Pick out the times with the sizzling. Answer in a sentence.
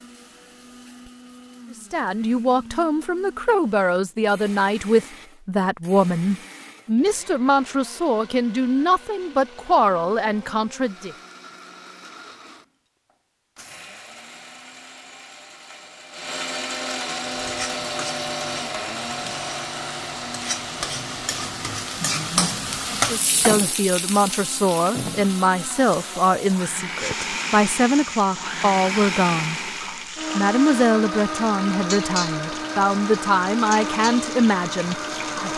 The sizzling can be heard from 17.2 to 35.5 s.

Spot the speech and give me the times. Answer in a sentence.
The speech can be heard from 1.7 to 11.2 s, from 22.9 to 29.6 s and from 30.4 to 35.5 s.